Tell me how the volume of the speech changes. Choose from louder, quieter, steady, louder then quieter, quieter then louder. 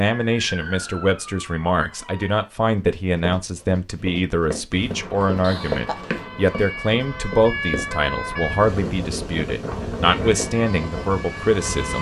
steady.